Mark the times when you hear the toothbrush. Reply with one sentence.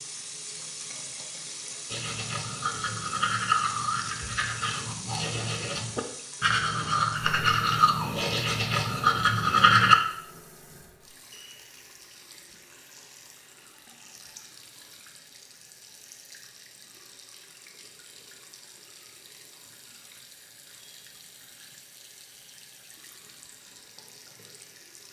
The toothbrush can be heard from 1.9 to 9.9 s.